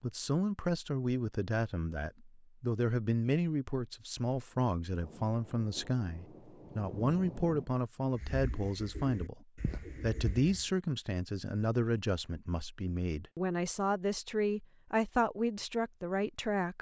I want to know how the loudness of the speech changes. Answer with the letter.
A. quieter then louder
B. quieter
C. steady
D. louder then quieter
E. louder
C.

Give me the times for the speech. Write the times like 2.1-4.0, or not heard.
0.0-16.7.